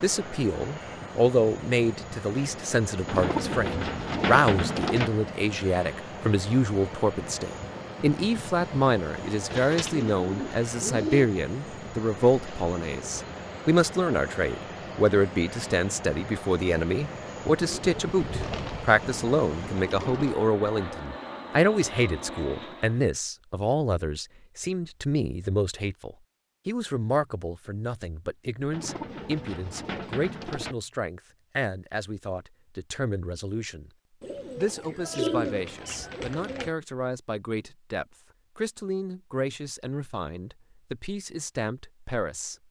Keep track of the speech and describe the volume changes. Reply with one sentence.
The volume of the speech goes down.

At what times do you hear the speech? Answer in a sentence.
You can hear the speech from 0.0 to 33.9 s and from 34.5 to 42.5 s.